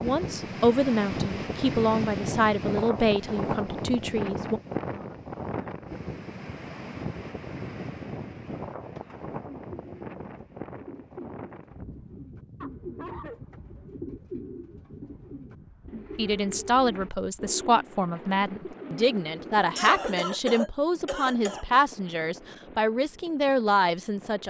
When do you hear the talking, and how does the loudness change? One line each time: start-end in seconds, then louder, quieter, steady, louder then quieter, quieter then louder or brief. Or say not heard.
0.0-4.6 quieter
16.1-24.4 steady.